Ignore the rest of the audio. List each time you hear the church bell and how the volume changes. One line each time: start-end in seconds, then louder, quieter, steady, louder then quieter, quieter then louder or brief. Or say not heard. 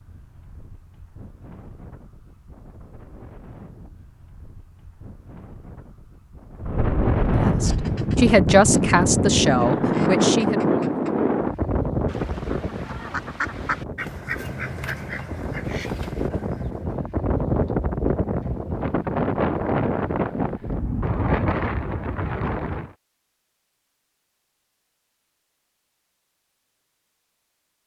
not heard.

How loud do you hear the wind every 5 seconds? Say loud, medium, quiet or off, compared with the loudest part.
quiet, loud, loud, loud, loud, off.